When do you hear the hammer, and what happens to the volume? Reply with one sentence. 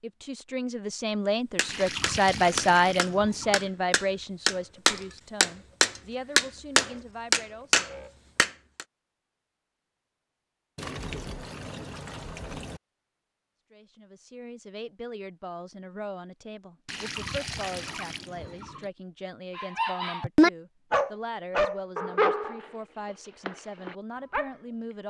The hammer can be heard from 1.6 to 8.8 s, getting louder.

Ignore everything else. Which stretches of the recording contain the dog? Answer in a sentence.
The dog can be heard from 19.6 to 24.6 s.